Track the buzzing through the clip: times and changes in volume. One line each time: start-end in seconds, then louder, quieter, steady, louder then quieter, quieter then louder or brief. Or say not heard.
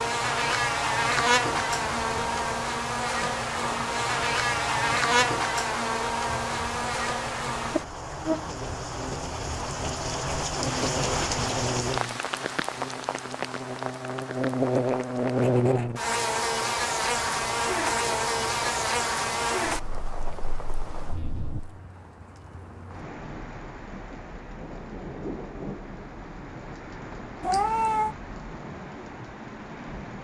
0.0-21.8 quieter then louder.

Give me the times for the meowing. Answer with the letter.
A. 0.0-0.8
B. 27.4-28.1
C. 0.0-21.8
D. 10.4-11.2
B.